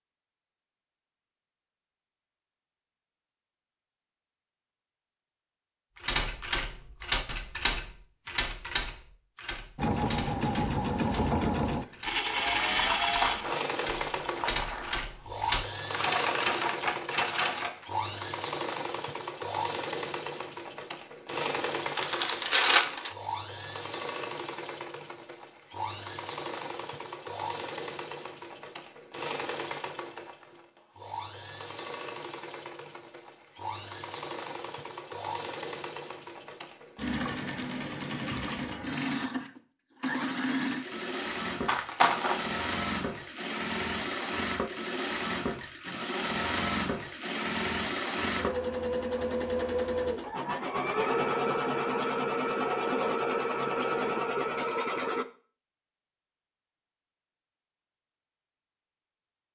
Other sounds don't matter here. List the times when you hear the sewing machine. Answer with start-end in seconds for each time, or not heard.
9.8-55.2.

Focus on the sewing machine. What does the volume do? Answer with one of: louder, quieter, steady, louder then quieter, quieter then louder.
quieter then louder.